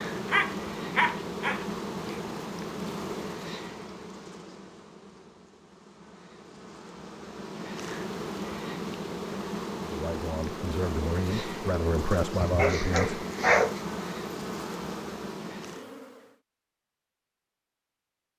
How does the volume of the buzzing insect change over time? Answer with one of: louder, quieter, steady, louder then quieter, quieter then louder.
quieter then louder.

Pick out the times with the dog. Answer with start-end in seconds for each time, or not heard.
0.2-2.2, 12.3-13.8.